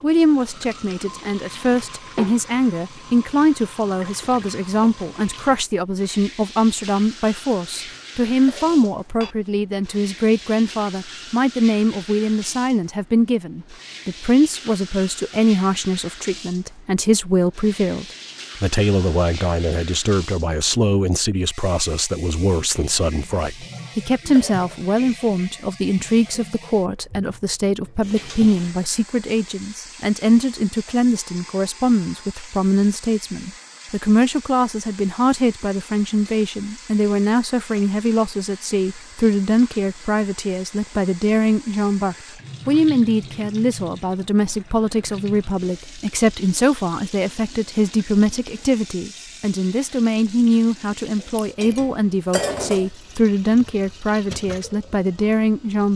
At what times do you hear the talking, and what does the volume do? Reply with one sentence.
You can hear the talking from 0.0 to 55.9 s, at a steady volume.